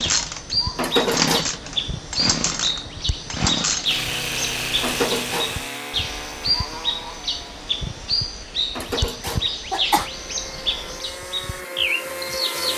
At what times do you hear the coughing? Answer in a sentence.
The coughing can be heard from 0.8 to 1.4 s, from 4.8 to 5.7 s and from 8.8 to 10.1 s.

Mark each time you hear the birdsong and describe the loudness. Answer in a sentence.
You can hear the birdsong from 0.0 to 12.7 s, at a steady volume.